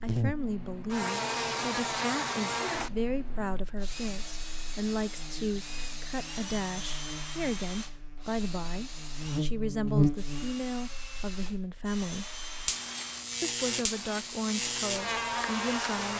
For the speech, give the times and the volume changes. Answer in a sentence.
You can hear the speech from 0.0 to 12.2 s, at a steady volume; and briefly from 13.4 to 16.1 s.